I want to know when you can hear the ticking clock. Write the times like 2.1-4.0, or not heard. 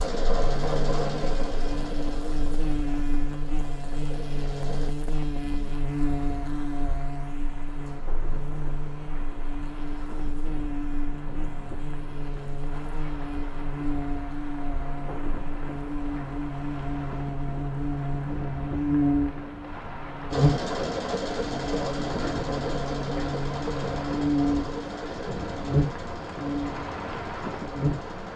not heard.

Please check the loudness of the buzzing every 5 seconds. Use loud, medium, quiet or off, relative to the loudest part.
medium, medium, medium, loud, loud, loud.